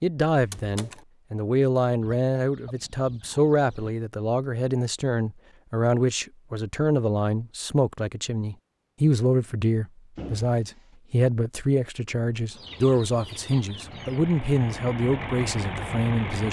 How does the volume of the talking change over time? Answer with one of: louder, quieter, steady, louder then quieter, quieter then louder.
steady.